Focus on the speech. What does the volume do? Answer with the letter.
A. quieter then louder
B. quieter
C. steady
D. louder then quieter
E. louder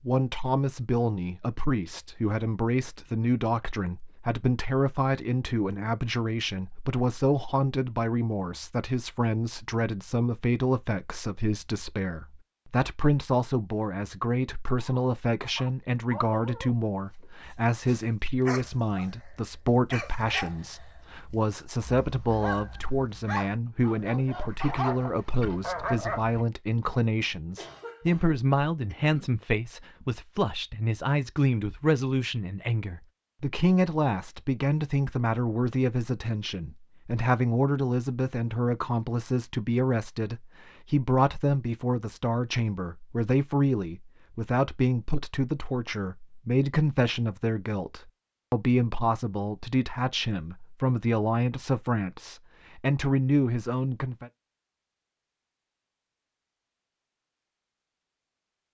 C.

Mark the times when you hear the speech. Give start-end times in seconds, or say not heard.
0.1-54.3.